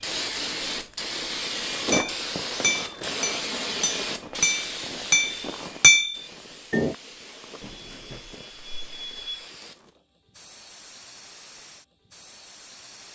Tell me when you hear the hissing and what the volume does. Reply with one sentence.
You can hear the hissing from 0.0 to 13.1 s, getting quieter.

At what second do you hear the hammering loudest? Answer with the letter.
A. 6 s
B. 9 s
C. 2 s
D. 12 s
A.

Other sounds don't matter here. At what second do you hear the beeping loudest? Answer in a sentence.
The loudest moment of the beeping is at 9 seconds.